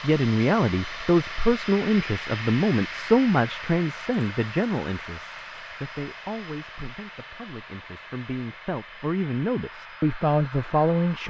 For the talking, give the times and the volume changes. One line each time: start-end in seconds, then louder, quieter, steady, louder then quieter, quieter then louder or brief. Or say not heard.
0.0-11.2 quieter then louder.